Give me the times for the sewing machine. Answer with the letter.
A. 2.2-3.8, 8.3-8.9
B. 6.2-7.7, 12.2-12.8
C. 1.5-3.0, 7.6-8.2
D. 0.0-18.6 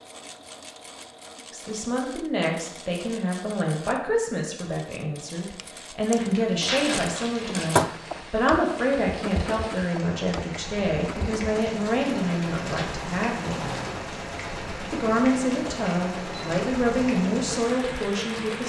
D.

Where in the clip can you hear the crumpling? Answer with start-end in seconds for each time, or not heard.
6.2-7.7, 12.2-12.8.